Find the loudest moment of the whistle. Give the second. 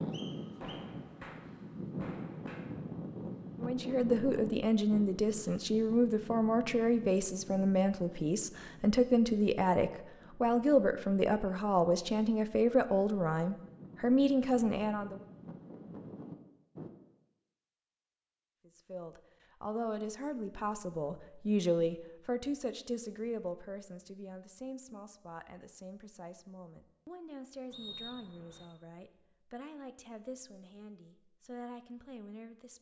28 s.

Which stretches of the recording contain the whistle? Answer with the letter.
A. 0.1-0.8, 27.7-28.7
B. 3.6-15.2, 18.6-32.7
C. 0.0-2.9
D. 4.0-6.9
A.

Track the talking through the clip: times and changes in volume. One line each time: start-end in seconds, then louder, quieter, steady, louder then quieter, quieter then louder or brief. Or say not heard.
3.6-15.2 steady
18.6-32.7 quieter.